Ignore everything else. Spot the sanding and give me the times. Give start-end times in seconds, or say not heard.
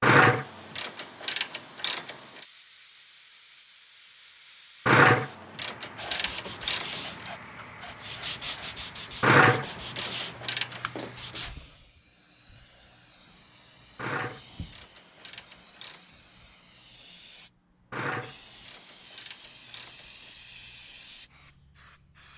6.0-11.6.